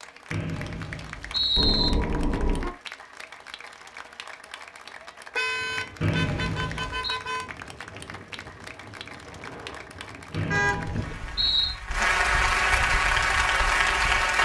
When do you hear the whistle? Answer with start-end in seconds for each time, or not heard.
0.3-1.9, 6.0-7.2, 10.3-11.8.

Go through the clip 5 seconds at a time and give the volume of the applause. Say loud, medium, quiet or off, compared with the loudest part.
quiet, quiet, loud.